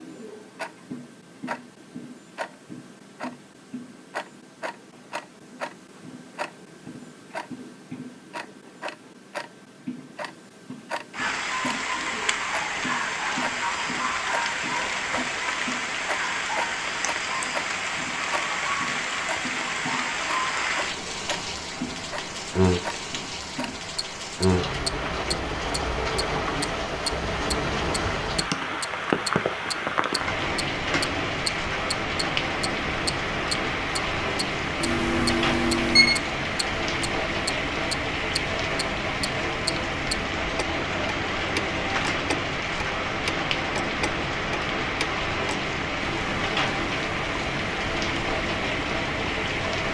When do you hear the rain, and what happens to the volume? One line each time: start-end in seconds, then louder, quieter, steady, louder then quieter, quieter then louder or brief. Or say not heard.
11.1-49.8 steady.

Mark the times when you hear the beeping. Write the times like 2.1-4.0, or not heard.
34.8-36.1.